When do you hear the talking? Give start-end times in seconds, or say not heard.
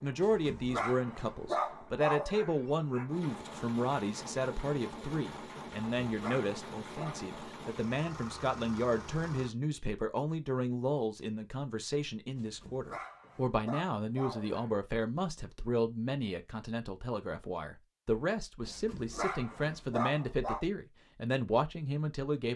0.0-22.5.